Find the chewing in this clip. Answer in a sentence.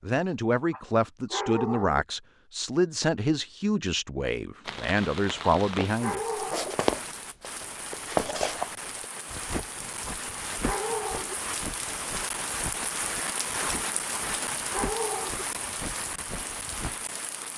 The chewing can't be heard in this clip.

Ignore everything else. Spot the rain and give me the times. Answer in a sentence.
You can hear the rain from 4.6 to 17.5 s.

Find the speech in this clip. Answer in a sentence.
You can hear the speech from 0.0 to 6.2 s.